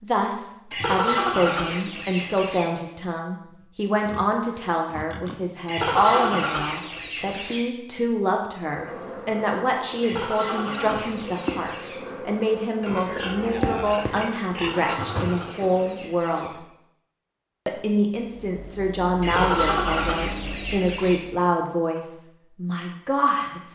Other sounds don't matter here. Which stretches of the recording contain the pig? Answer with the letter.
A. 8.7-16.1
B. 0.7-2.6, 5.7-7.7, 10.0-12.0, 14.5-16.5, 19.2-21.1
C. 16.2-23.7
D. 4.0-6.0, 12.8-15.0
D.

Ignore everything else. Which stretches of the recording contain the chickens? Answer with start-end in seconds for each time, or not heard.
0.7-2.6, 5.7-7.7, 10.0-12.0, 14.5-16.5, 19.2-21.1.